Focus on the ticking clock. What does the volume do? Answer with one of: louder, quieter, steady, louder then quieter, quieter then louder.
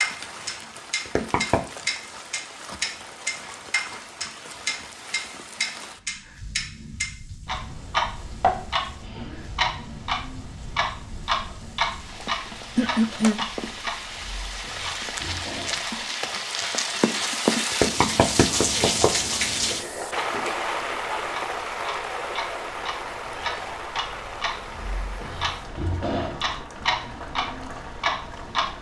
quieter then louder.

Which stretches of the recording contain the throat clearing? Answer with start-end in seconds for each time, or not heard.
12.8-13.3.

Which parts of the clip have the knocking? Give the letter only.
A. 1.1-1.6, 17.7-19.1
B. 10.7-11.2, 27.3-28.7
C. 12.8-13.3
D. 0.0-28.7
A.